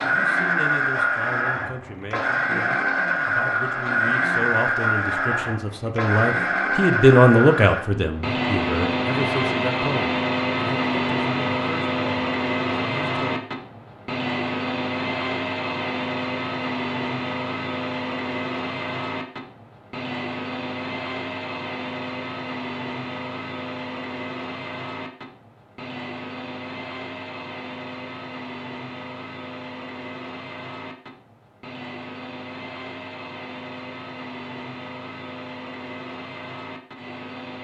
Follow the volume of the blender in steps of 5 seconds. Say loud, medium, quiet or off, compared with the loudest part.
loud, loud, loud, medium, medium, quiet, quiet, quiet.